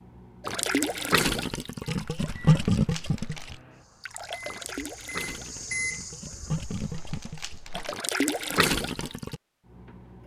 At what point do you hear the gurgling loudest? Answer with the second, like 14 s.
3 s.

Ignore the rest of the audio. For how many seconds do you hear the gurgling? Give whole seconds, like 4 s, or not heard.
9 s.